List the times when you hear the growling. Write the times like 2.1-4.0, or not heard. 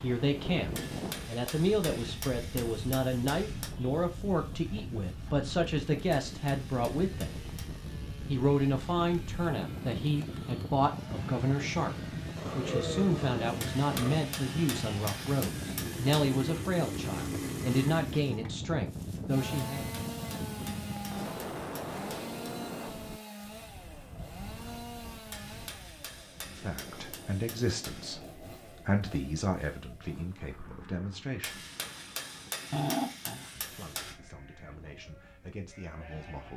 12.3-14.2, 32.7-33.5.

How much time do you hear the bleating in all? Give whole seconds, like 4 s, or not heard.
3 s.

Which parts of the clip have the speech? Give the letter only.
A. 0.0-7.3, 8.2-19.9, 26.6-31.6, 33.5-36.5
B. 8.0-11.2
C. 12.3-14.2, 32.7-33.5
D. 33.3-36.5
A.